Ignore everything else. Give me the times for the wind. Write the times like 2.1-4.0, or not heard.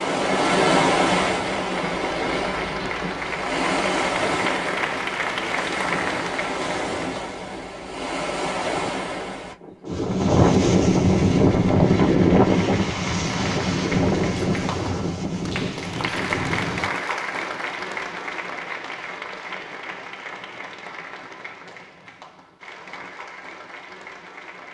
0.0-16.9.